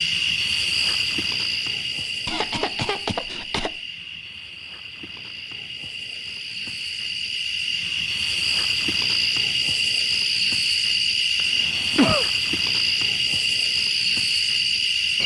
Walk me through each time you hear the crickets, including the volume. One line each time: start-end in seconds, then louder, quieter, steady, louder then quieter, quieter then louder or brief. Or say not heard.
0.0-15.2 quieter then louder.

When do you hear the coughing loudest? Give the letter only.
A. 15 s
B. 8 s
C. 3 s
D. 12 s
D.